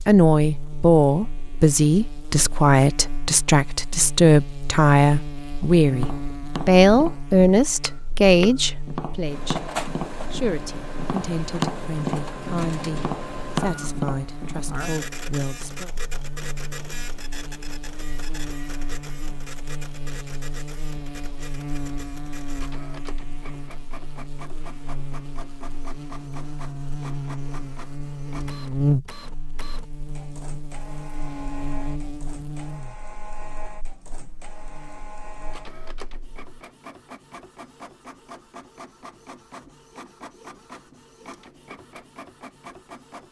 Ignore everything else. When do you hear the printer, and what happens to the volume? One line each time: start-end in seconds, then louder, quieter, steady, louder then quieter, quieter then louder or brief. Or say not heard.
9.2-43.2 quieter.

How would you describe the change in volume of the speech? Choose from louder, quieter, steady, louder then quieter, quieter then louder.
quieter.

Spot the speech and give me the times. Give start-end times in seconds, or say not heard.
0.1-15.9.